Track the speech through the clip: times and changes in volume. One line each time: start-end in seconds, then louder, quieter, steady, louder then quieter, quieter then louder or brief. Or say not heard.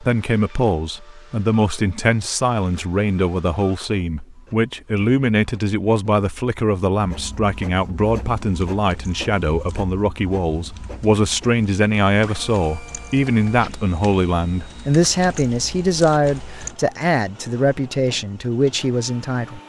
0.0-19.6 steady.